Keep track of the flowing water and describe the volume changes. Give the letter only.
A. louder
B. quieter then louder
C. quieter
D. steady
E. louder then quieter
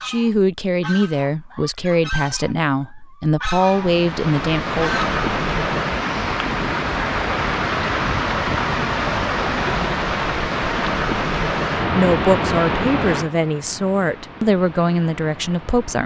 C.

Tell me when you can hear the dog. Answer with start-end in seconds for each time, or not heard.
not heard.